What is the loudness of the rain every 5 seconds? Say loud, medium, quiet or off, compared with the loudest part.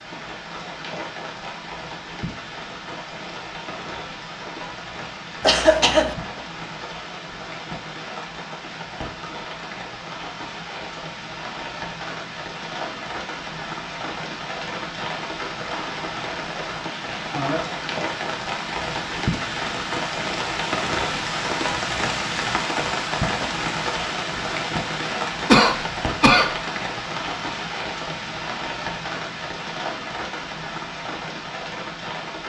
medium, medium, medium, loud, loud, loud, medium.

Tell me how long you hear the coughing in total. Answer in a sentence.
The coughing can be heard for 2 seconds in total.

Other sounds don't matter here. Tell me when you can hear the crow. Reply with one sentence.
The crow can't be heard in this clip.